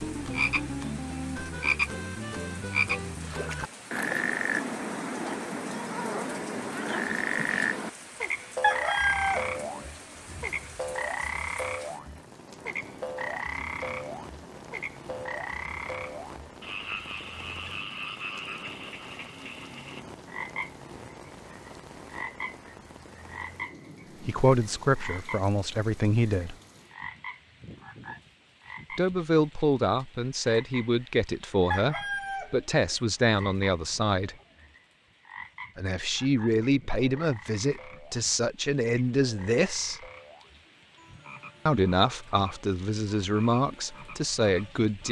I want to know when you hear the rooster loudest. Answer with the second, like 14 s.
9 s.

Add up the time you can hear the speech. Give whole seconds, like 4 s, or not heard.
15 s.